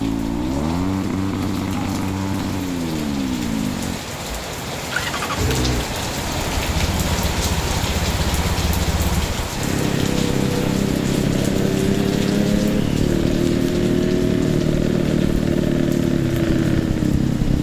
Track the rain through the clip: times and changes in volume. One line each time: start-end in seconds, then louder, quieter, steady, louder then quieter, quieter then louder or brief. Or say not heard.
0.0-17.5 louder then quieter.